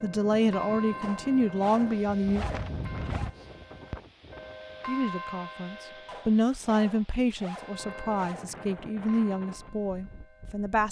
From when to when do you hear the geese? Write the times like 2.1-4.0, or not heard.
not heard.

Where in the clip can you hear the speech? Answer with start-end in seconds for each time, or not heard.
0.0-2.5, 4.8-10.8.